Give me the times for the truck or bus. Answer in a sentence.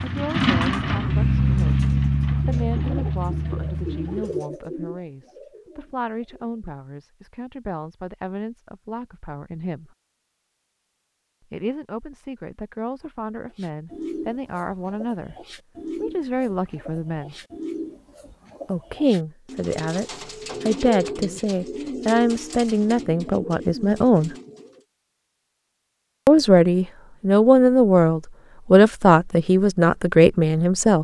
You can hear the truck or bus from 0.0 to 4.3 s.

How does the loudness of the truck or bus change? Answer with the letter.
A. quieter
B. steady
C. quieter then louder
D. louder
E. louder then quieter
A.